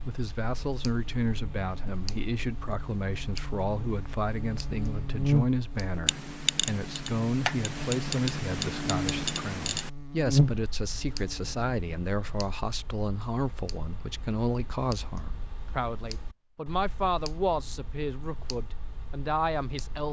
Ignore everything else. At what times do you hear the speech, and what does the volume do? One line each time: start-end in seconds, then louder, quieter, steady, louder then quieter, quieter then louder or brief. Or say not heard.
0.1-20.0 steady.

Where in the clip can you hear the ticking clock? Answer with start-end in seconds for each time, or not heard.
0.0-20.0.